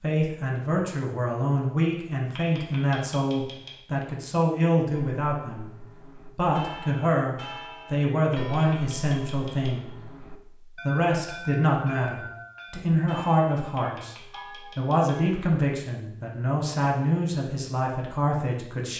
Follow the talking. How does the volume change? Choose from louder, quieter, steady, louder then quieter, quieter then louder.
steady.